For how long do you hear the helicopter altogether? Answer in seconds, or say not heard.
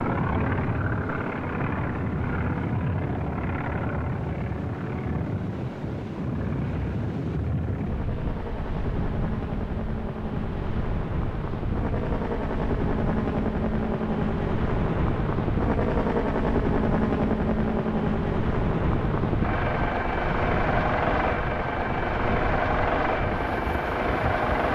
25 s.